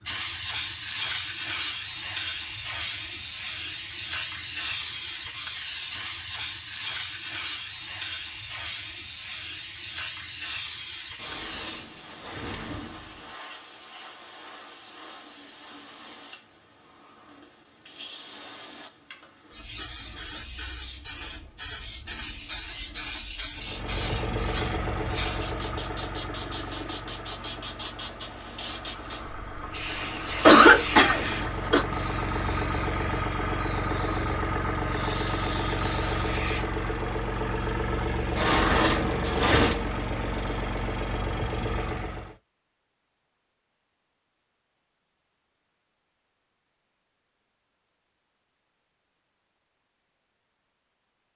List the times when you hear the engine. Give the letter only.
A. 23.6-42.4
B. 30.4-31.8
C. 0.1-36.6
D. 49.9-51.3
A.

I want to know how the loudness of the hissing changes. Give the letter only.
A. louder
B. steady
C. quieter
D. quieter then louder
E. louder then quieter
D.